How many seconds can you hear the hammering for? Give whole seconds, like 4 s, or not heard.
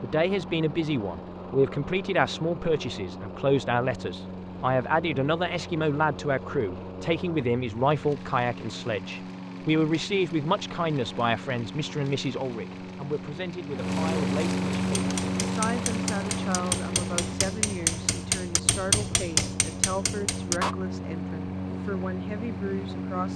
6 s.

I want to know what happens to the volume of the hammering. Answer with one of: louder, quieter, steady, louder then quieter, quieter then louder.
louder.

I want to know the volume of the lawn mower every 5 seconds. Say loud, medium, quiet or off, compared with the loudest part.
medium, medium, loud, loud, loud.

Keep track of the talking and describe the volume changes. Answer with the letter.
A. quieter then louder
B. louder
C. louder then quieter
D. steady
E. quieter
E.